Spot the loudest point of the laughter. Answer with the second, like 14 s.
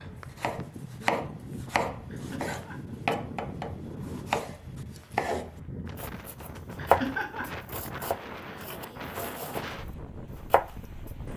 7 s.